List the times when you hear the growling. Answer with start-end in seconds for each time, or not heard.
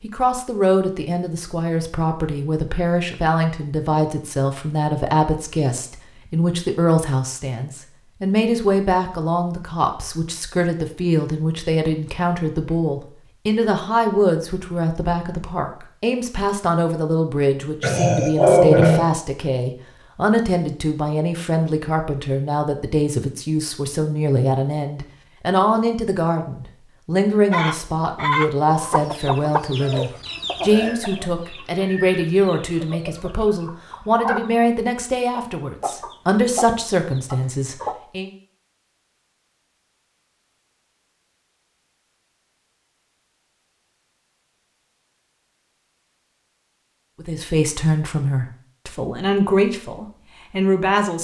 17.8-19.1.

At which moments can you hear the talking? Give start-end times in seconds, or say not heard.
0.0-38.3, 47.2-51.1.